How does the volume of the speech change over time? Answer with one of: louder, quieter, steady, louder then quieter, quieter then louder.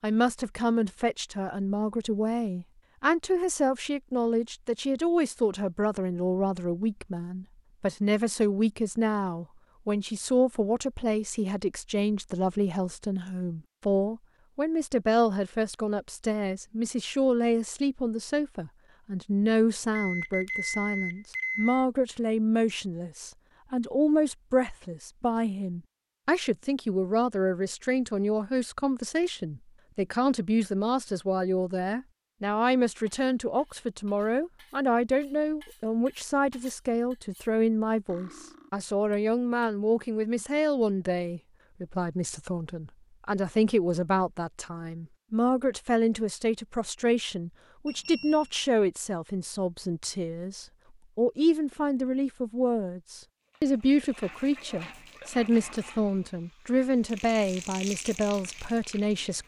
steady.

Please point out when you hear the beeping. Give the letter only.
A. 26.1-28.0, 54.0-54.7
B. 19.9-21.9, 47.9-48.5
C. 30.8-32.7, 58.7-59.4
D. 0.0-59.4
B.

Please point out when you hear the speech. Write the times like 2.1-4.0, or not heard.
0.0-59.4.